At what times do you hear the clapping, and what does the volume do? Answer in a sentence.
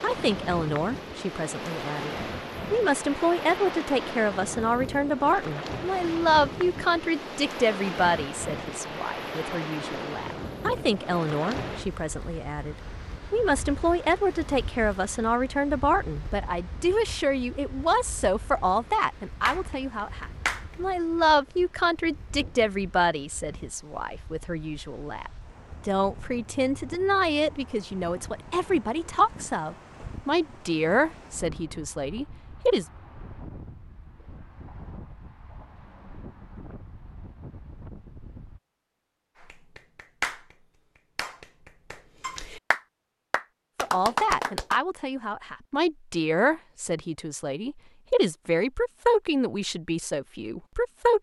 You can hear the clapping briefly from 19.4 to 20.9 s; and from 39.4 to 44.8 s, getting quieter then louder.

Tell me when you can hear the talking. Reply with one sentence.
The talking can be heard from 0.0 to 32.9 s and from 43.8 to 51.1 s.